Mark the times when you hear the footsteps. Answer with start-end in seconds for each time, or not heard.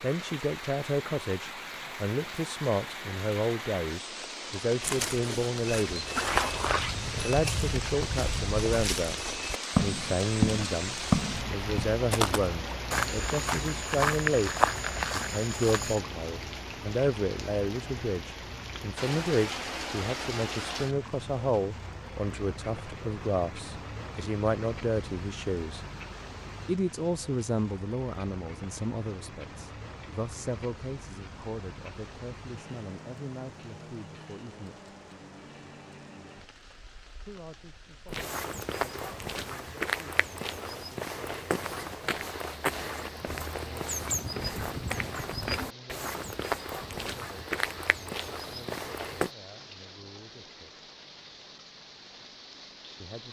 4.8-16.0, 38.0-49.3.